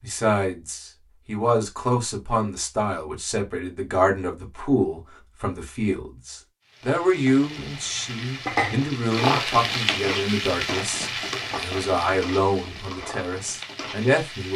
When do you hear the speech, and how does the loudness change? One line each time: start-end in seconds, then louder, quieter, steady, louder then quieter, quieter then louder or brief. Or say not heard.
0.0-14.5 steady.